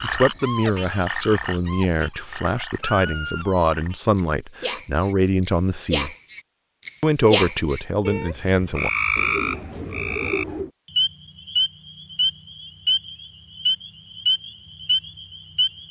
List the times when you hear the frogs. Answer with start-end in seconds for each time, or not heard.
0.0-15.8.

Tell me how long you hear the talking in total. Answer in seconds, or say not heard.
8 s.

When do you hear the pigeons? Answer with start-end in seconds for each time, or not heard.
9.2-10.7.